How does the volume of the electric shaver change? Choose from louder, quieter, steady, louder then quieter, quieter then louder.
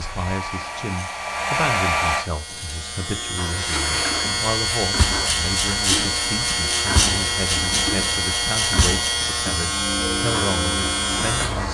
louder.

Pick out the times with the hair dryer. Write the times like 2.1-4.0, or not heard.
0.0-2.2.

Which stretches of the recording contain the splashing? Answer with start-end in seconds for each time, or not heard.
3.6-9.2.